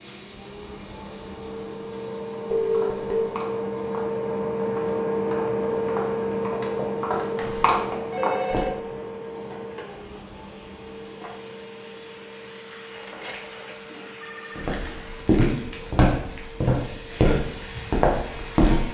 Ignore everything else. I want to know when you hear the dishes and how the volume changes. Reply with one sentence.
You can't hear the dishes here.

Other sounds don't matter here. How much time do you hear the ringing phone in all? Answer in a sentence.
You can hear the ringing phone for 4 seconds altogether.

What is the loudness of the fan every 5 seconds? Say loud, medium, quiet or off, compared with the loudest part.
loud, loud, quiet, quiet.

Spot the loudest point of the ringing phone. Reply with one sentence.
The loudest moment of the ringing phone is at 3 seconds.